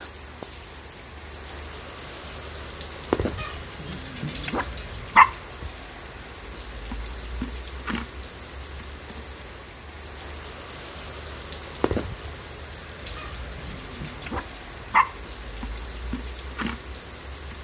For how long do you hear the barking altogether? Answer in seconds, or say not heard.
4 s.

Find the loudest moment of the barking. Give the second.
5 s.